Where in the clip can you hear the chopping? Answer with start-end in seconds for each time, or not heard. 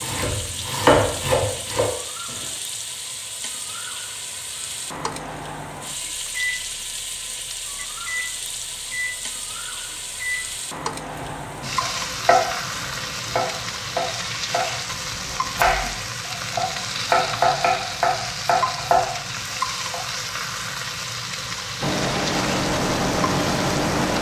0.0-2.4, 11.2-20.0.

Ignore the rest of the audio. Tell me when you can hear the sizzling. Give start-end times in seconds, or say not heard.
0.0-24.1.